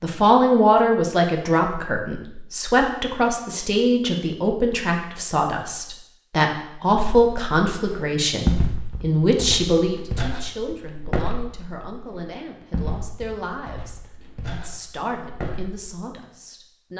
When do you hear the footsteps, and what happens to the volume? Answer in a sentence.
The footsteps can be heard from 6.8 to 16.0 s, getting quieter.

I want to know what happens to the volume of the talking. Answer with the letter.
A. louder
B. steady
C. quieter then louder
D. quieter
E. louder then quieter
D.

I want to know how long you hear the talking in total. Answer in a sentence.
You can hear the talking for 17 seconds altogether.